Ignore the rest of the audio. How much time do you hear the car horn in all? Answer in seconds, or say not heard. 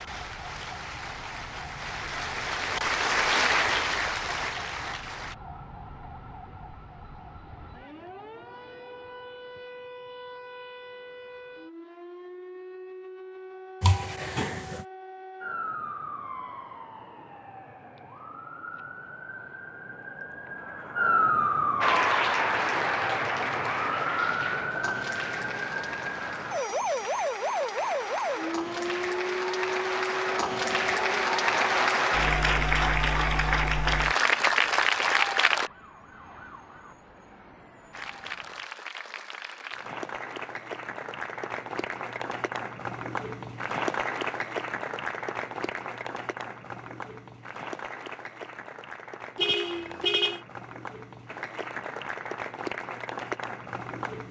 2 s.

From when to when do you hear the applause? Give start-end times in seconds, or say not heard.
0.0-5.3, 21.8-35.7, 37.9-54.2.